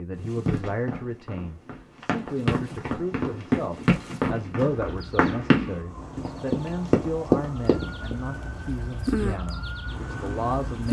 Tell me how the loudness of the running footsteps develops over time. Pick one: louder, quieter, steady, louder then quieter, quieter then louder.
louder.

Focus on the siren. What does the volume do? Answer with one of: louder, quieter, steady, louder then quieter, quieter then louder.
louder then quieter.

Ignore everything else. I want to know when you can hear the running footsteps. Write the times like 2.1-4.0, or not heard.
0.2-8.2.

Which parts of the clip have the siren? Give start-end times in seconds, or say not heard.
4.8-10.8.